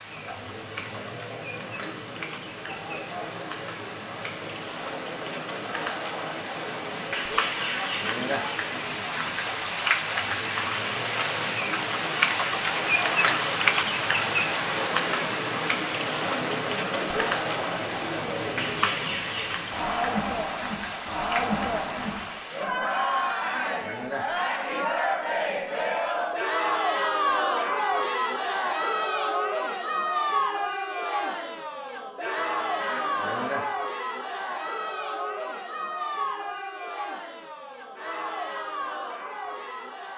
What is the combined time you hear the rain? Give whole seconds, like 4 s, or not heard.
23 s.